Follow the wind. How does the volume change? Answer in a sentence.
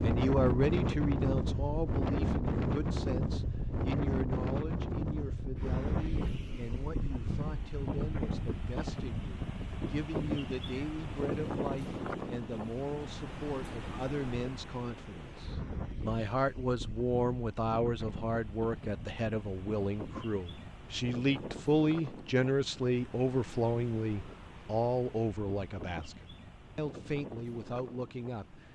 The volume of the wind goes down.